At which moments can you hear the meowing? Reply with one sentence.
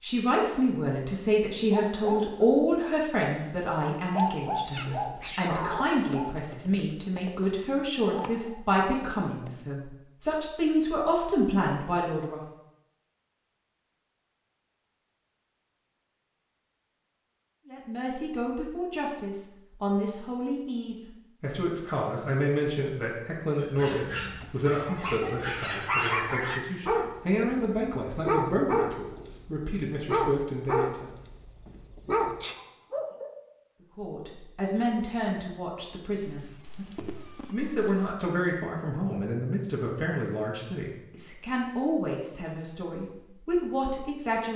The meowing can be heard from 4.6 to 5.8 s and from 36.2 to 38.1 s.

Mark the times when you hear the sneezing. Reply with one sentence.
You can hear the sneezing from 31.9 to 32.5 s.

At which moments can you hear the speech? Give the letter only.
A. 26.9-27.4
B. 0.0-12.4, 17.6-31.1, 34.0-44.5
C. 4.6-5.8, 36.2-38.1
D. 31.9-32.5
B.